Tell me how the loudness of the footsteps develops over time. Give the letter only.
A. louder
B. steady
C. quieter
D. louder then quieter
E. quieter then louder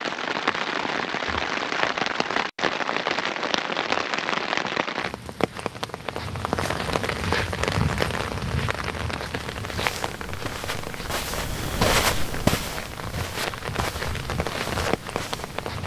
D.